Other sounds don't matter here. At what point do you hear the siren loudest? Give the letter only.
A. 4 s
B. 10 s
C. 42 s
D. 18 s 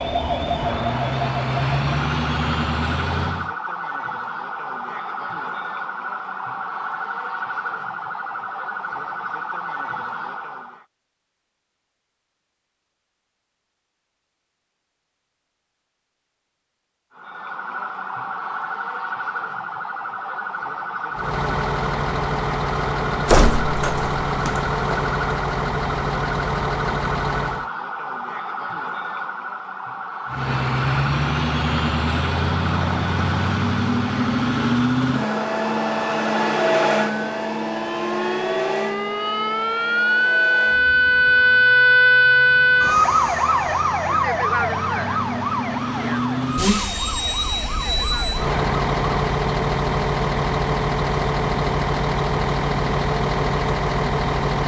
C.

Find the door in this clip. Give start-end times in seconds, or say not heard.
23.2-25.0.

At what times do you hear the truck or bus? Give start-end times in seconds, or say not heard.
0.0-3.5, 21.1-27.7, 30.2-54.6.